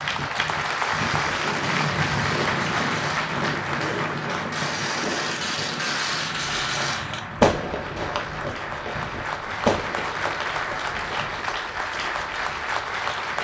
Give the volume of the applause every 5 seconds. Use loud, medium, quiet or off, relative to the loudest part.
loud, medium, loud.